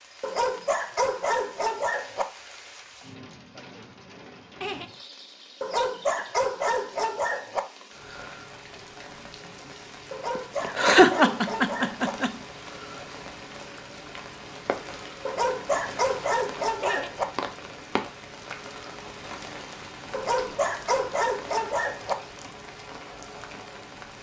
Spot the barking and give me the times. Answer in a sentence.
You can hear the barking from 0.2 to 2.2 s, from 5.6 to 7.6 s, from 10.1 to 12.1 s, from 15.2 to 17.2 s and from 20.1 to 22.1 s.